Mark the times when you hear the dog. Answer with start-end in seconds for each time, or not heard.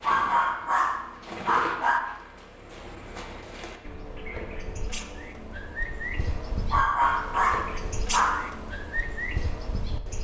0.0-2.0, 6.7-8.4.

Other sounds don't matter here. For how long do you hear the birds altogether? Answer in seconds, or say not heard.
10 s.